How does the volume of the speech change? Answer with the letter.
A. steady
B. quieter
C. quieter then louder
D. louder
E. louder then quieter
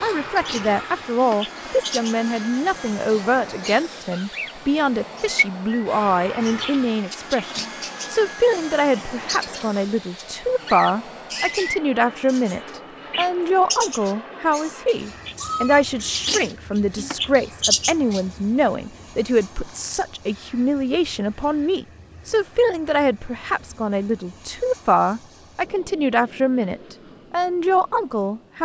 A.